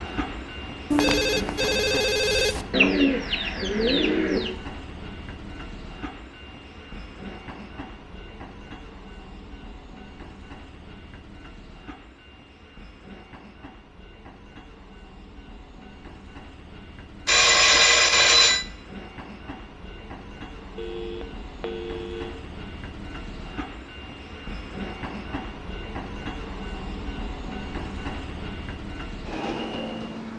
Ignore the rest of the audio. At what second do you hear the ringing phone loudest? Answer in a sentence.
The volume of the ringing phone peaks at 18 seconds.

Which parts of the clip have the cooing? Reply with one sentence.
The cooing can be heard from 2.7 to 4.5 s.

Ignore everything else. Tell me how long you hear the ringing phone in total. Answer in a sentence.
The ringing phone can be heard for 5 seconds in total.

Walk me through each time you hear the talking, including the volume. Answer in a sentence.
You can't hear the talking here.